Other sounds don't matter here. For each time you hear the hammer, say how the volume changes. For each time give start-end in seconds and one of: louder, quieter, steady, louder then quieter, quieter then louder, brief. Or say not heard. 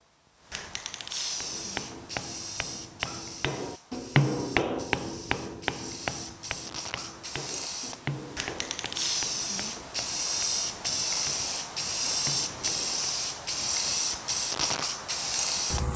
1.4-13.1 louder then quieter.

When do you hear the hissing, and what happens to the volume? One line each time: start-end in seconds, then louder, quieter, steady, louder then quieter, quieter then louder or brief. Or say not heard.
0.0-15.9 quieter then louder.